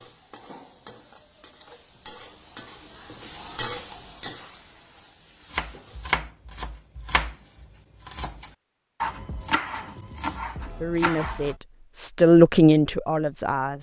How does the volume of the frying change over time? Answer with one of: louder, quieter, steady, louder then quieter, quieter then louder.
louder then quieter.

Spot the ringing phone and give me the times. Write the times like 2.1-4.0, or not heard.
not heard.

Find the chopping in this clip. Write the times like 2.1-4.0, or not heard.
5.5-11.6.